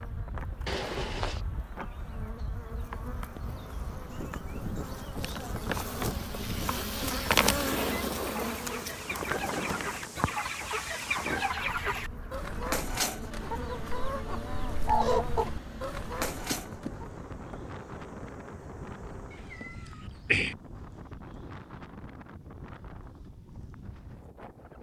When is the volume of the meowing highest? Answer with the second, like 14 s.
20 s.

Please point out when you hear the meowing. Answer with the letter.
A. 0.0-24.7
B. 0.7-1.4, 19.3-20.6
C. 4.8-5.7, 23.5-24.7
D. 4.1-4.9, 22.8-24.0
B.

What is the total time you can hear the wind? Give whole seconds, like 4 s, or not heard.
25 s.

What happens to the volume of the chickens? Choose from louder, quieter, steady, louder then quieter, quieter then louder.
louder.